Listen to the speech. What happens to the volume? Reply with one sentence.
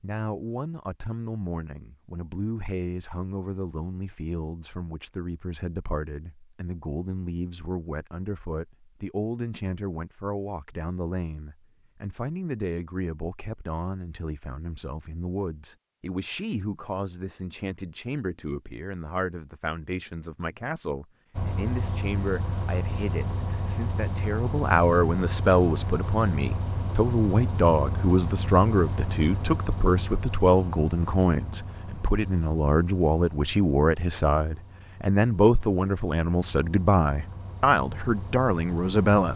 The volume of the speech goes up.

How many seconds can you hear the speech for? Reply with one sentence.
The speech can be heard for 39 seconds in total.